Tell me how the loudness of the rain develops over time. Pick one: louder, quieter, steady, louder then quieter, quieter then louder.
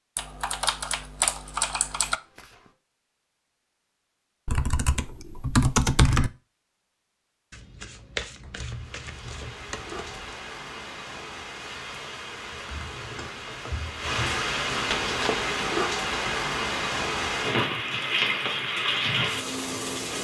louder.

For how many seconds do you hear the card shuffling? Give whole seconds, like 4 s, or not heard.
4 s.